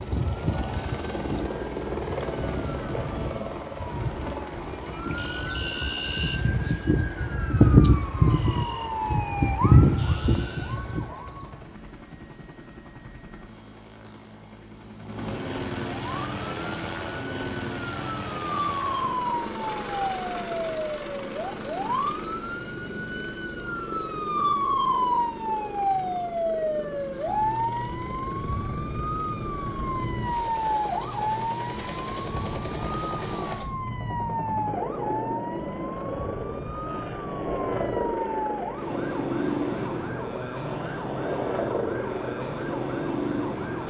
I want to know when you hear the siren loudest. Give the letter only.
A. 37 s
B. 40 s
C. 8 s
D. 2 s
C.